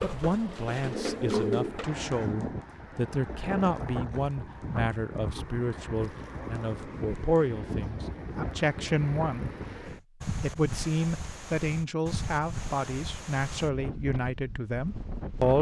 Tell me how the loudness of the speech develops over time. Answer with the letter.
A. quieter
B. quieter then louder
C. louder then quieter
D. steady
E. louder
D.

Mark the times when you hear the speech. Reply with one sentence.
You can hear the speech from 0.0 to 9.5 s and from 10.4 to 15.5 s.